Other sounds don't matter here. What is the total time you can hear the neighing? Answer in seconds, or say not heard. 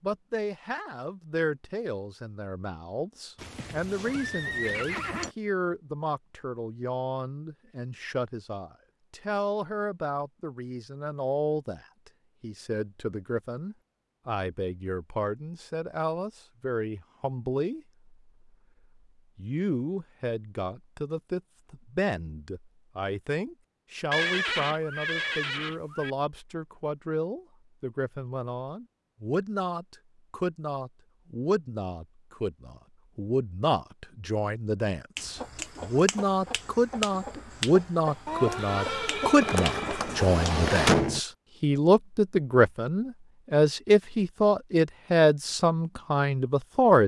6 s.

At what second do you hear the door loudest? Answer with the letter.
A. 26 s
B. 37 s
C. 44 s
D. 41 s
D.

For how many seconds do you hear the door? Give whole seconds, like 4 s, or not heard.
2 s.